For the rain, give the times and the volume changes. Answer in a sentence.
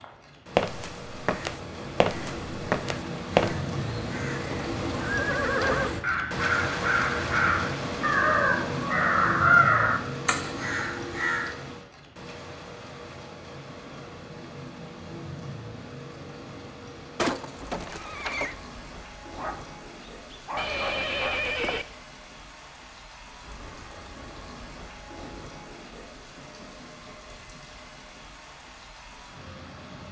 The rain can be heard from 0.0 to 30.0 s, getting quieter.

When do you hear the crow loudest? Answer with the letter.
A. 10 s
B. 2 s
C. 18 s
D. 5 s
A.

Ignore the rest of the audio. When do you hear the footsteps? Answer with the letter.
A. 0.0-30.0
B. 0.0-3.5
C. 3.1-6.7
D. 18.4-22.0
B.